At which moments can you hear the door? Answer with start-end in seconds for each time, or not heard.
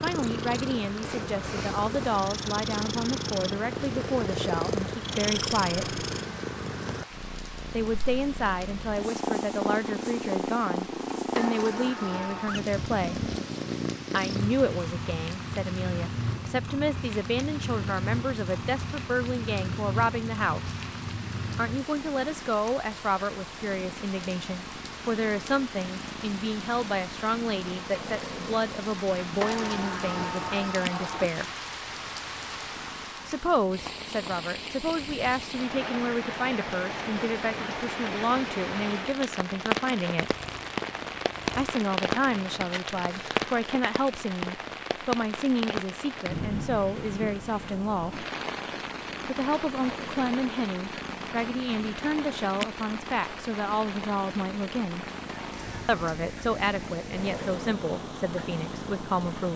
11.3-12.6, 29.4-31.4, 55.2-55.9.